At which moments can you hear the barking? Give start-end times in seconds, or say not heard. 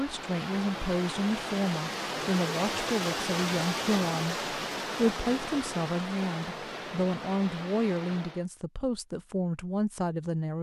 not heard.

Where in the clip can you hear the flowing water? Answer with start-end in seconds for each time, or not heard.
0.0-8.4.